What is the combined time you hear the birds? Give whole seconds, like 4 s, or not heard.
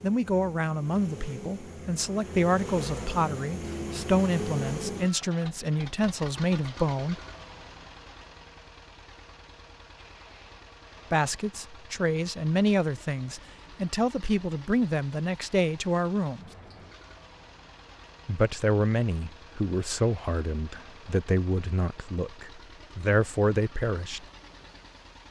not heard.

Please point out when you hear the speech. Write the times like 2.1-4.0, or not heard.
0.0-7.2, 11.1-16.5, 18.2-24.2.